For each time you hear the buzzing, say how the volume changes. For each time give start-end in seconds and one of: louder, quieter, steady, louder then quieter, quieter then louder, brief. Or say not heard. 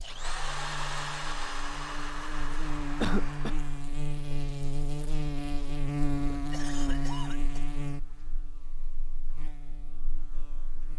0.0-10.9 louder then quieter.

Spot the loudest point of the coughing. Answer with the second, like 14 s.
3 s.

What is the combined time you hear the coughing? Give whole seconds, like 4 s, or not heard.
2 s.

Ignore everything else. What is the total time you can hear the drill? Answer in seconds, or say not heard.
4 s.